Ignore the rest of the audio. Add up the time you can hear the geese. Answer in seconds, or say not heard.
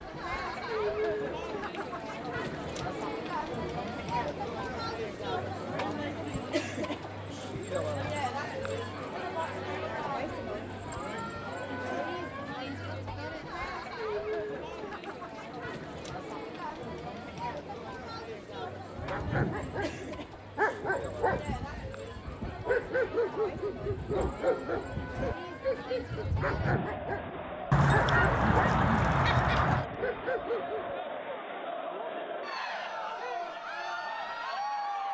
2 s.